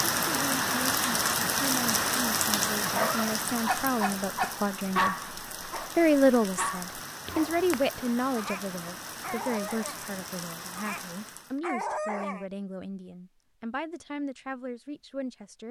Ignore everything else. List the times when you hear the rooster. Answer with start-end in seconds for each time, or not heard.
not heard.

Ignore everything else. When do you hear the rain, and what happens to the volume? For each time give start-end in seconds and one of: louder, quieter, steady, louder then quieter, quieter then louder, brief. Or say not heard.
0.0-11.6 quieter.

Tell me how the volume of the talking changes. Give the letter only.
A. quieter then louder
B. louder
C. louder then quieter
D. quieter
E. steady
C.